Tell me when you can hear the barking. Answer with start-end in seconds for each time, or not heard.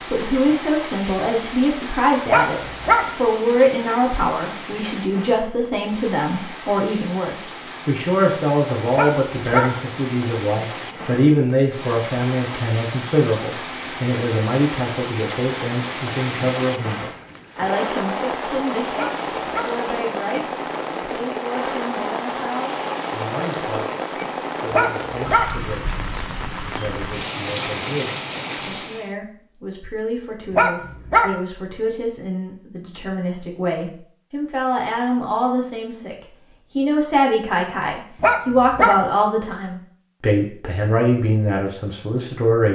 2.2-3.0, 8.9-9.7, 18.9-19.7, 24.7-25.5, 30.5-31.3, 38.2-39.0.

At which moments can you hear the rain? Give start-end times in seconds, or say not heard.
0.0-29.1.